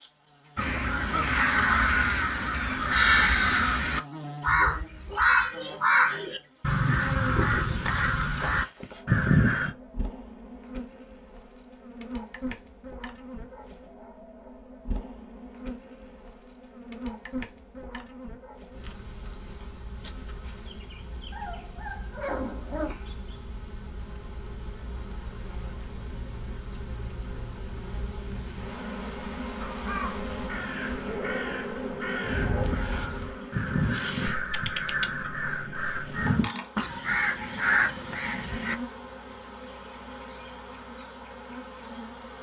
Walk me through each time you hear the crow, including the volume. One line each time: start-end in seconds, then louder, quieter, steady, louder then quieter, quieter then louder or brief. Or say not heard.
0.6-9.8 steady
29.6-38.8 louder.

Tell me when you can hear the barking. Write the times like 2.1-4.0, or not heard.
4.5-6.2, 21.3-22.9, 31.0-32.7.